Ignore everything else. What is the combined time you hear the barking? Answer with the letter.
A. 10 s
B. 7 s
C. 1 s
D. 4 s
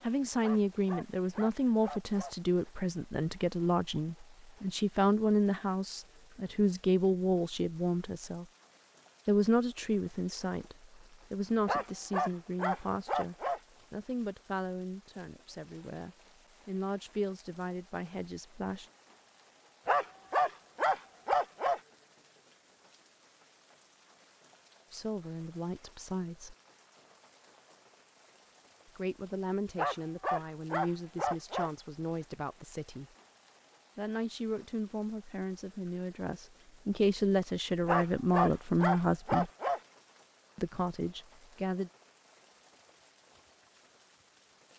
A.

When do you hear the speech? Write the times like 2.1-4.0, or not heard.
0.1-8.4, 9.2-18.9, 24.9-26.6, 28.9-33.0, 34.0-39.5, 40.5-41.9.